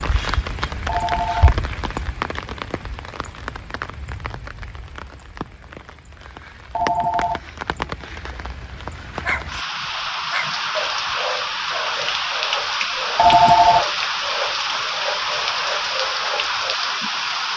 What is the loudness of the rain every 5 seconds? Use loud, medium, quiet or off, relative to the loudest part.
medium, medium, loud, loud.